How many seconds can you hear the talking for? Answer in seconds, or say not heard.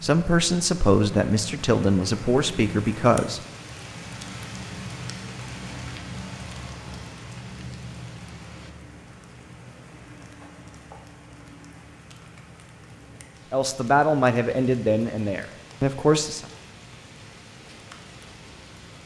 6 s.